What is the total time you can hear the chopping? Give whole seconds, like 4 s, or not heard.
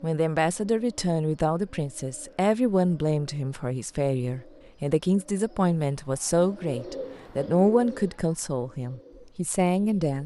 not heard.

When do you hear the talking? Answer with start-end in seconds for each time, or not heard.
0.0-10.2.